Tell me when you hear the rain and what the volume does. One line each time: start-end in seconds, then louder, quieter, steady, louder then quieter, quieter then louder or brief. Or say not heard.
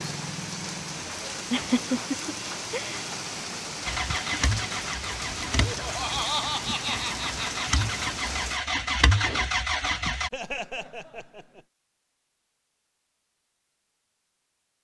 0.0-8.6 steady.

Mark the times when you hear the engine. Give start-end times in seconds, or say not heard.
3.9-10.3.